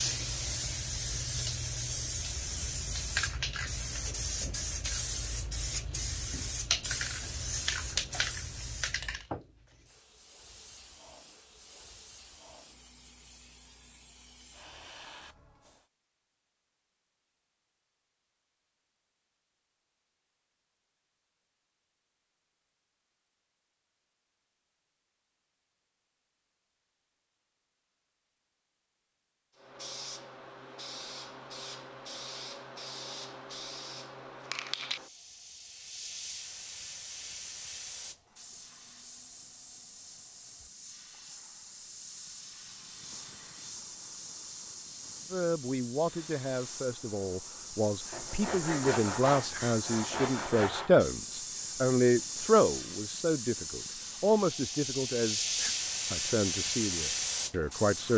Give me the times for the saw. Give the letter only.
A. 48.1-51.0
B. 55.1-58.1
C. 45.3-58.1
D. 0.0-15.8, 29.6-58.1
A.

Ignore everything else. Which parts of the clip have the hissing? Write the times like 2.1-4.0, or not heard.
0.0-15.8, 29.6-58.1.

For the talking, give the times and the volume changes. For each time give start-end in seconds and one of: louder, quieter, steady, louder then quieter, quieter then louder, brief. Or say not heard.
45.3-58.1 louder then quieter.